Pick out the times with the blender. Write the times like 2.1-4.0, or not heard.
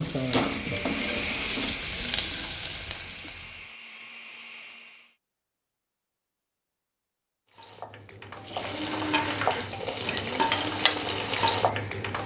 0.0-5.2, 8.6-12.2.